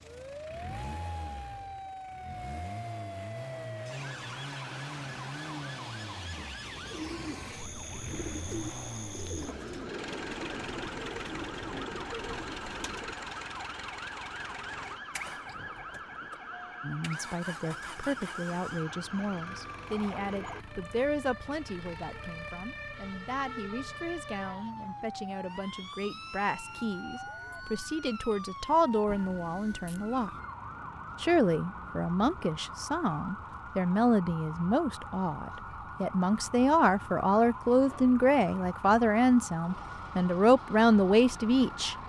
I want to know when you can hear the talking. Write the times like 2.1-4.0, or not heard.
16.8-30.3, 31.2-42.0.